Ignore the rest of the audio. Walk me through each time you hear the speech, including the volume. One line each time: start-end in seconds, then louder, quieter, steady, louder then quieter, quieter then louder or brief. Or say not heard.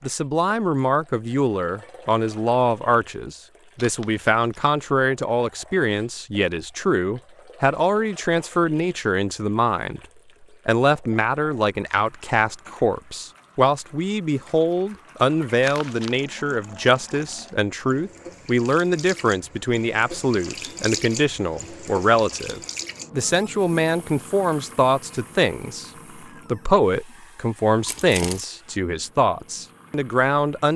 0.0-10.0 steady
10.7-30.7 steady.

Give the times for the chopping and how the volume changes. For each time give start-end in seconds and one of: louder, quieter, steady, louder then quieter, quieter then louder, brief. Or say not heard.
not heard.